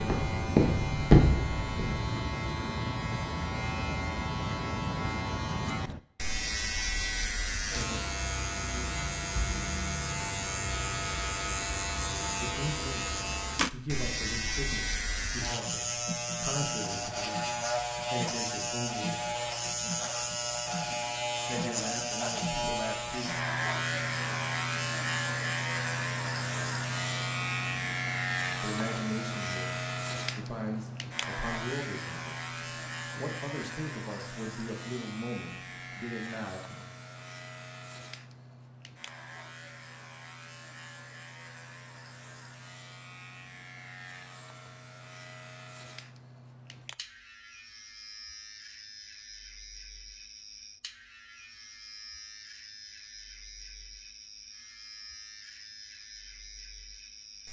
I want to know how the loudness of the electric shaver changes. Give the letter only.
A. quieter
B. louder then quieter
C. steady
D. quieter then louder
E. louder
A.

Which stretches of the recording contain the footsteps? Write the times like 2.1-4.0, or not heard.
0.0-2.0.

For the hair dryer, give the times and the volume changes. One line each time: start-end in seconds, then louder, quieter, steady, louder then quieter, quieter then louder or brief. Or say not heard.
not heard.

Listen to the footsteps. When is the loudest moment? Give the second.
1 s.